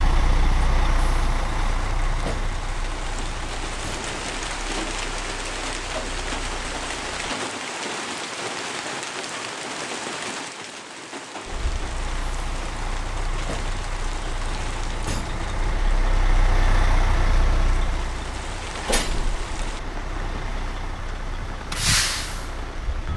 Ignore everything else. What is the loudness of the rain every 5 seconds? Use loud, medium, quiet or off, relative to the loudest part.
loud, loud, medium, medium, medium.